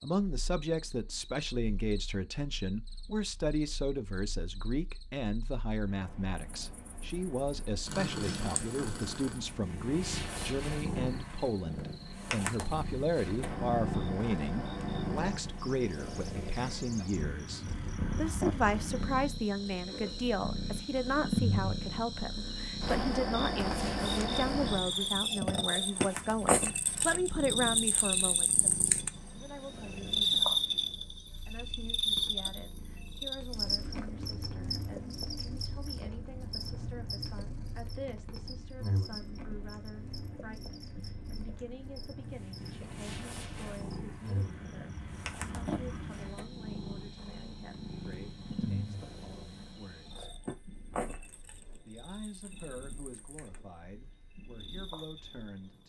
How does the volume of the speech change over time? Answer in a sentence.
The volume of the speech goes down.